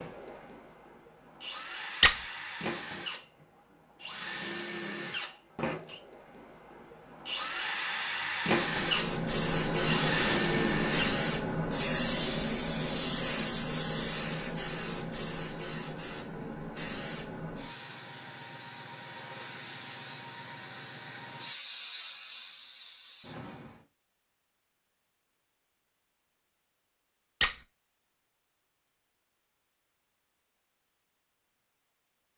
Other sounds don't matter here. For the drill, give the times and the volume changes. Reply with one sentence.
The drill can be heard from 0.0 to 11.2 s, getting louder.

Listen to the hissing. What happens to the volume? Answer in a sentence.
The loudness of the hissing goes down.